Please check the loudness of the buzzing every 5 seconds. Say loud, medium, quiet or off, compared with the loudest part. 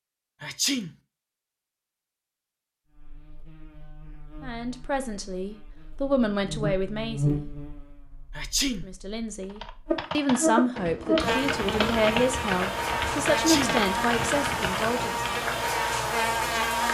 quiet, medium, loud, loud.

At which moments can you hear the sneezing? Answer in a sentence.
The sneezing can be heard from 0.4 to 0.9 s, from 8.3 to 8.8 s and from 13.2 to 13.8 s.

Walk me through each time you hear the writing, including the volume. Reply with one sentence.
The writing can't be heard in this clip.